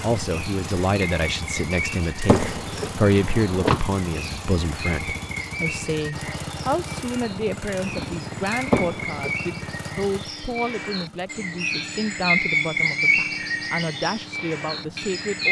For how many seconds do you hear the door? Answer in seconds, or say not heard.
2 s.